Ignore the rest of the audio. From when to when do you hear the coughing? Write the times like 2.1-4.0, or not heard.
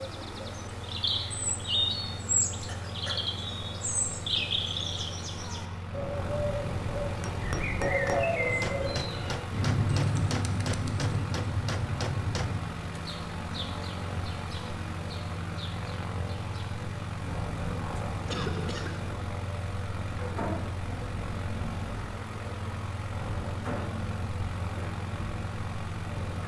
2.6-3.3, 18.2-19.1.